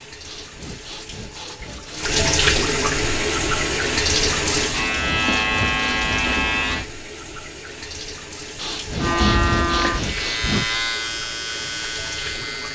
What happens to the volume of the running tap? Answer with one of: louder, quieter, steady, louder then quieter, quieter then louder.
quieter.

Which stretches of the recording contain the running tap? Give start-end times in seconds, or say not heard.
0.0-12.7.